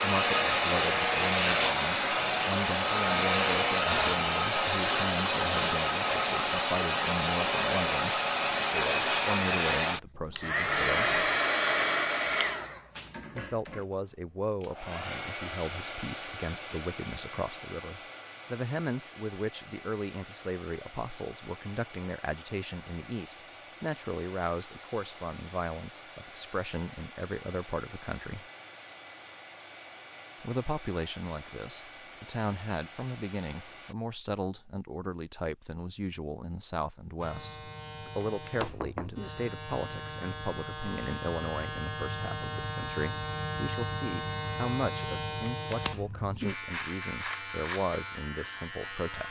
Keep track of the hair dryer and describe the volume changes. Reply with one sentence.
The loudness of the hair dryer goes down.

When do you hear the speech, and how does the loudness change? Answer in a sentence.
The speech can be heard from 0.0 to 11.2 s, at a steady volume; from 13.3 to 28.4 s, at a steady volume; and from 30.4 to 49.2 s, at a steady volume.